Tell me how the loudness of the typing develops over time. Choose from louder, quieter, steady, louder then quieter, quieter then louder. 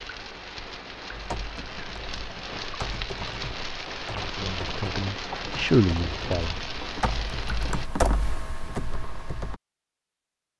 louder then quieter.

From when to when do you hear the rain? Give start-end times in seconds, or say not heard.
0.0-7.9.